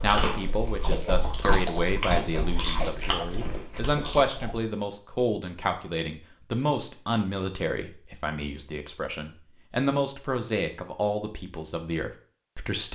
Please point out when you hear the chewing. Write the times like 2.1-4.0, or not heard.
0.0-4.6.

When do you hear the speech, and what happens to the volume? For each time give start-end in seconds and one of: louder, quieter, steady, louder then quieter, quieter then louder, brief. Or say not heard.
0.0-12.9 steady.